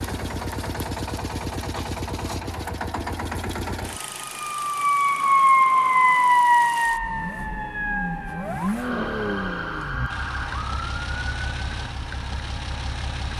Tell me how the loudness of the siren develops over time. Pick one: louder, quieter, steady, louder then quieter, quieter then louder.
quieter.